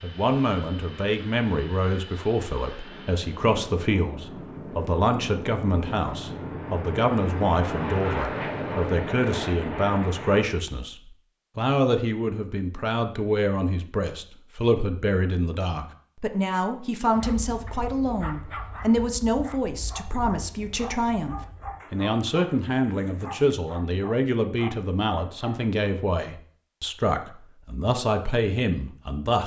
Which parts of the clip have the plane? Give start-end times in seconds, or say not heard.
0.0-10.5.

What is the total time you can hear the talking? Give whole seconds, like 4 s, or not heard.
29 s.